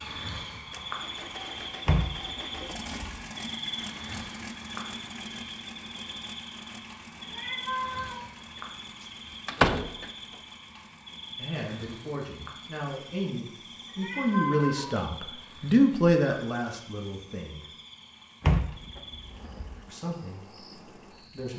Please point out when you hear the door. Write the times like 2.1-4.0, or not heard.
1.9-3.2, 9.4-10.1, 18.4-19.8.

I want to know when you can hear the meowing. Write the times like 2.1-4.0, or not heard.
7.2-8.2, 13.8-15.3.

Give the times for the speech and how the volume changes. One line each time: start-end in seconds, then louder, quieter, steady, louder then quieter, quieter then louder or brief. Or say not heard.
11.3-17.6 louder then quieter
19.9-21.5 brief.